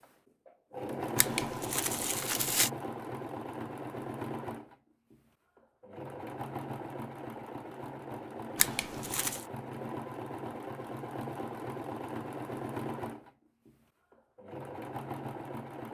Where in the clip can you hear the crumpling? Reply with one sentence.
You can hear the crumpling from 1.1 to 2.7 s and from 8.6 to 9.4 s.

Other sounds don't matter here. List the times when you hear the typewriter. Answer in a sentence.
You can't hear the typewriter here.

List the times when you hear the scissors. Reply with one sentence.
You can't hear the scissors here.